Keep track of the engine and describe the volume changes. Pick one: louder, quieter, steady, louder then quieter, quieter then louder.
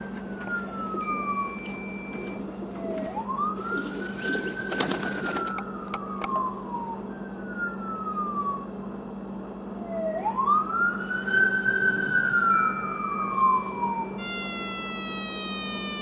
steady.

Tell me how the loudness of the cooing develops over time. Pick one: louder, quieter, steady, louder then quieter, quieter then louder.
louder.